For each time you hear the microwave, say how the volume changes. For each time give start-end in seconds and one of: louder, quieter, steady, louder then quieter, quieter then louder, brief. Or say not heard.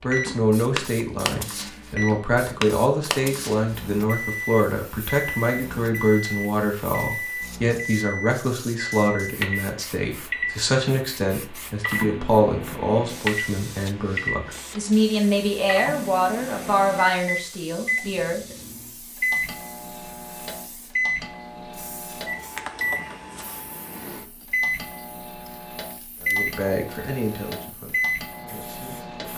0.0-29.3 steady.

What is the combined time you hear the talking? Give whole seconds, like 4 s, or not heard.
22 s.